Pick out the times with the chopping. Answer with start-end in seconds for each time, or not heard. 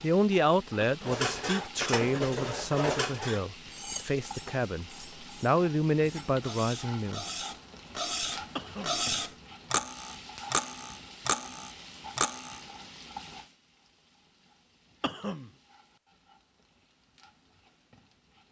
not heard.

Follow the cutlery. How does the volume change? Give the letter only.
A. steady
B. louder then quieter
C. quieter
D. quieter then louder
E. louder
D.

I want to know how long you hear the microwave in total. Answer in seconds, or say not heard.
not heard.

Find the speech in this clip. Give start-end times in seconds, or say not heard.
0.0-7.2.